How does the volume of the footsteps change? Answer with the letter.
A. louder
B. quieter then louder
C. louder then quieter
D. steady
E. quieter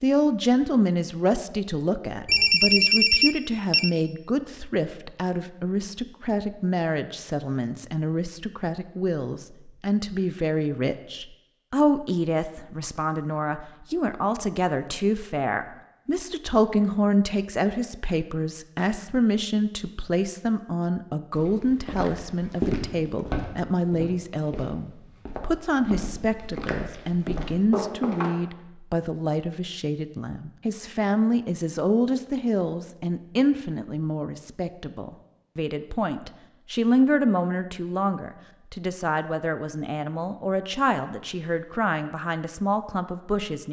B.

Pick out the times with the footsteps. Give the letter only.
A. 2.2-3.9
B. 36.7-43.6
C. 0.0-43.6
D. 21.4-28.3
D.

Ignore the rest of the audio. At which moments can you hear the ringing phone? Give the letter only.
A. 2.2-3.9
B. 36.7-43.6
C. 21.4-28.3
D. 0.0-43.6
A.